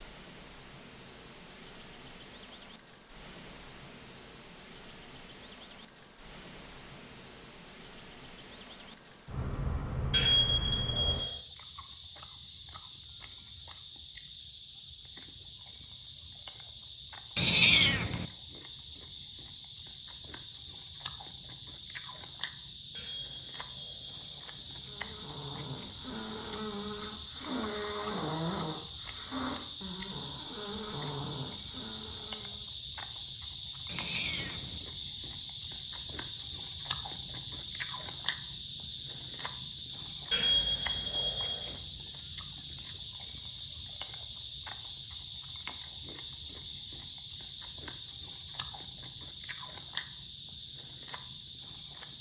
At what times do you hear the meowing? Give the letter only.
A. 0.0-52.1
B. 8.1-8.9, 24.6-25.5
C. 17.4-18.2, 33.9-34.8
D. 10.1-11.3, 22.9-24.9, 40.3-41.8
C.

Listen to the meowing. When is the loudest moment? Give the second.
18 s.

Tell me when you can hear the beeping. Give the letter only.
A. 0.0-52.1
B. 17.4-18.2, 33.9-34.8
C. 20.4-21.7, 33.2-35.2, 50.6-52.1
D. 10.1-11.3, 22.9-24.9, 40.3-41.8
D.